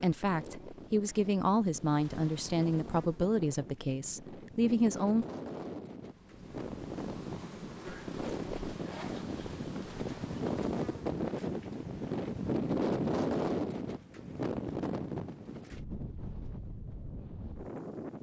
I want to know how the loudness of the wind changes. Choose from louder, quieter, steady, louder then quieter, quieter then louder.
louder then quieter.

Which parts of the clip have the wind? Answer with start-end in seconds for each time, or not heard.
0.0-18.1.